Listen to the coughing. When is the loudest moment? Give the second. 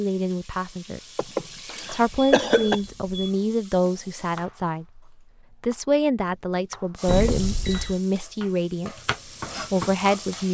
2 s.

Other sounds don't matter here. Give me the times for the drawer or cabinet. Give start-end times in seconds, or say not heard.
not heard.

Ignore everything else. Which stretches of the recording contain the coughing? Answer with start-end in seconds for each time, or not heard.
1.1-2.8, 7.1-8.0.